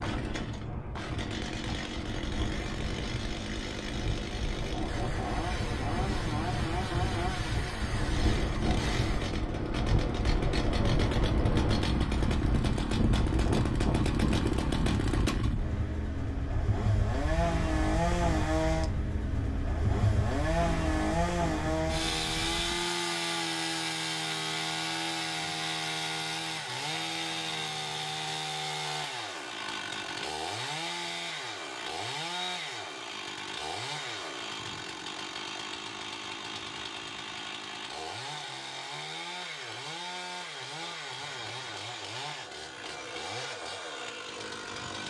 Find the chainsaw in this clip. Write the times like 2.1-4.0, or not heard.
0.0-45.0.